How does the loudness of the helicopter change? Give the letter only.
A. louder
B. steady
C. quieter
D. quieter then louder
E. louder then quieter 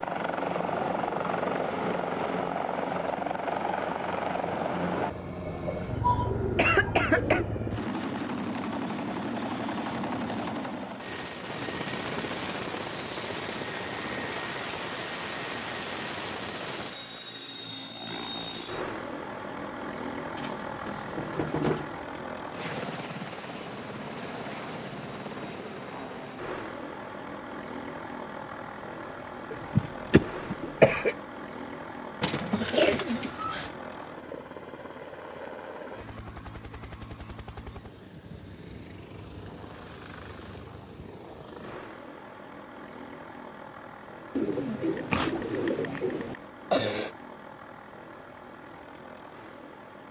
C.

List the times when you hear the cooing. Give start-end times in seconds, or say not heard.
5.5-7.5, 20.4-21.9, 32.2-33.7, 44.4-46.4.